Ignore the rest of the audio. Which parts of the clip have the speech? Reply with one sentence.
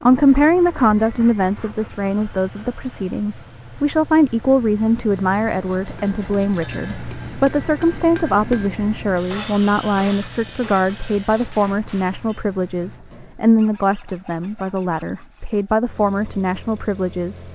The speech can be heard from 0.0 to 17.4 s.